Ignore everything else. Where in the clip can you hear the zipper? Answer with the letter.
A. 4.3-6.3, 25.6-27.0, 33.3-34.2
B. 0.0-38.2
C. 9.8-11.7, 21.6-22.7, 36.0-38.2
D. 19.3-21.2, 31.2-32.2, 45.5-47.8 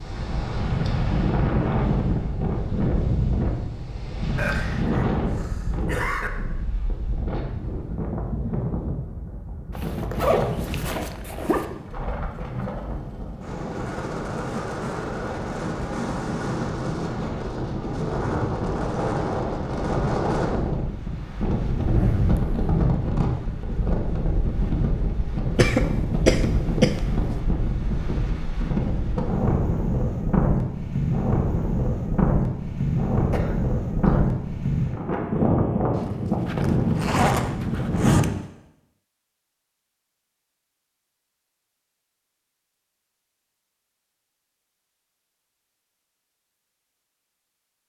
C.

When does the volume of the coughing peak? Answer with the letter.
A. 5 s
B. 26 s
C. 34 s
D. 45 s
B.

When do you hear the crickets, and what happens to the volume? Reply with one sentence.
You can't hear the crickets here.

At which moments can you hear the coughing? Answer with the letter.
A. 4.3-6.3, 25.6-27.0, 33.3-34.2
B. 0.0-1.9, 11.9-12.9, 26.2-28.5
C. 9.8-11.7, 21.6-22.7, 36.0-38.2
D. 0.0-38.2
A.